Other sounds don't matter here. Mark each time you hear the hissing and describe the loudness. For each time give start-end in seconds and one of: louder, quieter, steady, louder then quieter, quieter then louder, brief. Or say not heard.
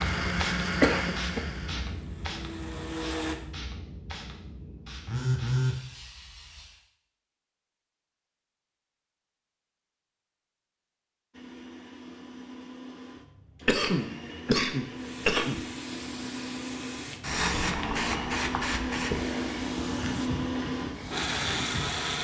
0.0-6.8 quieter
14.9-22.1 louder then quieter.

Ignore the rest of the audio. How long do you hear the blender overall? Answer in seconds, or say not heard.
14 s.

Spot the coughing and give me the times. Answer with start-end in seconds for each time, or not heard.
0.8-1.4, 13.7-15.7.